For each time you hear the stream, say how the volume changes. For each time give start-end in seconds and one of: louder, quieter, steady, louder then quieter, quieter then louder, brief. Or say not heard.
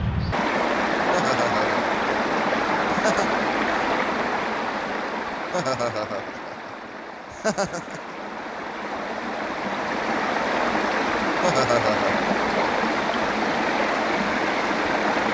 0.0-15.2 quieter then louder.